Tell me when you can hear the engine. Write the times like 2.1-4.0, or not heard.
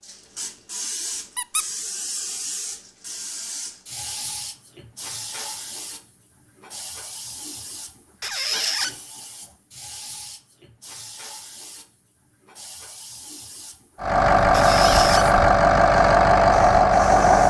14.0-17.4.